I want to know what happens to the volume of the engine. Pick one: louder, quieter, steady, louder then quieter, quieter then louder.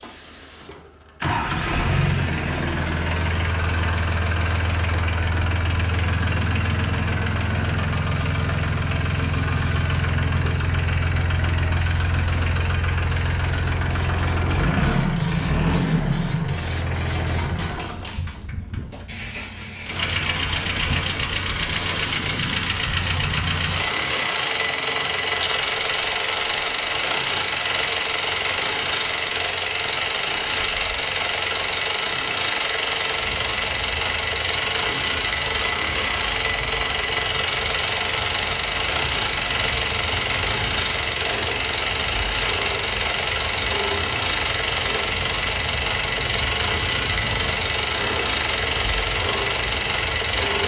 steady.